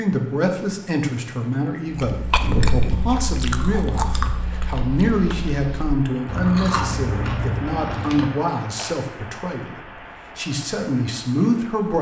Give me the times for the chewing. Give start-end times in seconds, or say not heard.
1.9-8.9.